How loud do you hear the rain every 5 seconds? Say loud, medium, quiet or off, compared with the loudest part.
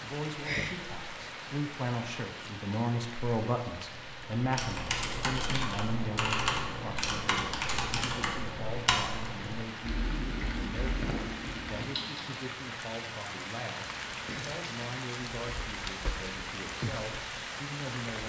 loud, medium, loud, loud.